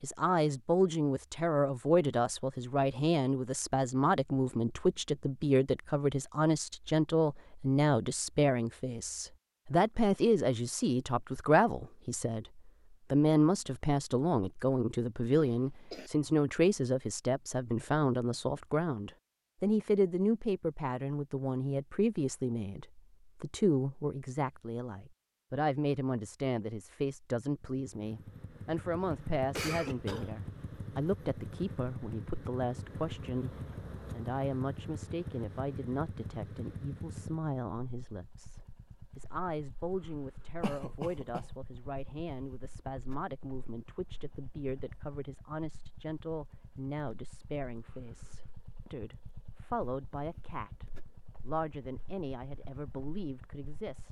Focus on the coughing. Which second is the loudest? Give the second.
30 s.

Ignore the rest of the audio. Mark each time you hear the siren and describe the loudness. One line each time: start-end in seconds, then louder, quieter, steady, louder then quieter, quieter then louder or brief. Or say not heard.
not heard.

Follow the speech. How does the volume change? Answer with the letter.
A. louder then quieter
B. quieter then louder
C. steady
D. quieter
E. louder
D.